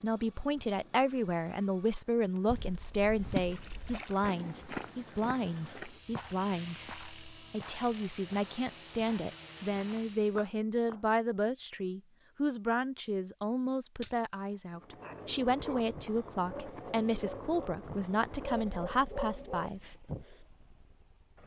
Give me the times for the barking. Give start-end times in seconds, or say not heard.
15.0-20.4.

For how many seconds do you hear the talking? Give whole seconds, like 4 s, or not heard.
20 s.